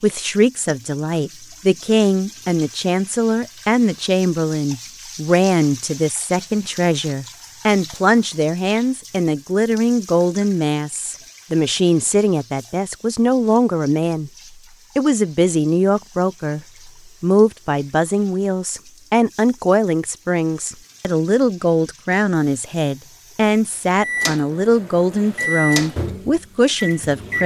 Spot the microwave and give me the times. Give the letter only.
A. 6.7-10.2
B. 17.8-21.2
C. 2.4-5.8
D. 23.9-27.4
D.